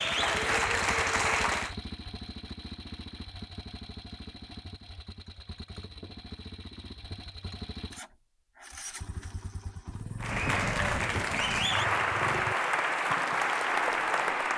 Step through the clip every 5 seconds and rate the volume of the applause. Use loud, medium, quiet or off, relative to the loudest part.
loud, off, loud.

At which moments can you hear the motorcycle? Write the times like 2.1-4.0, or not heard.
0.0-12.6.